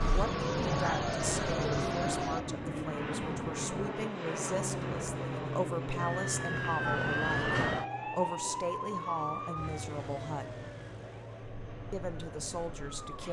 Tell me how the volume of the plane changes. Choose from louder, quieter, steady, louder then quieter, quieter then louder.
quieter.